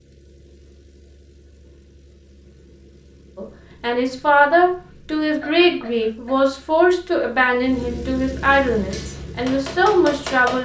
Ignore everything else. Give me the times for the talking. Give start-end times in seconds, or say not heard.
3.4-10.5.